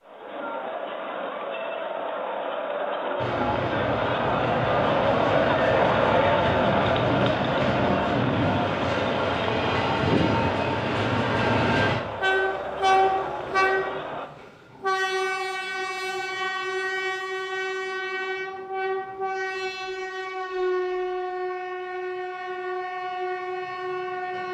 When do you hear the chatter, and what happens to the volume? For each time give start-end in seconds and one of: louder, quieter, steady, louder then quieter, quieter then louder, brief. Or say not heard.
0.0-14.3 louder then quieter.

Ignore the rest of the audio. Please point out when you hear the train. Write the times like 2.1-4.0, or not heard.
3.1-24.5.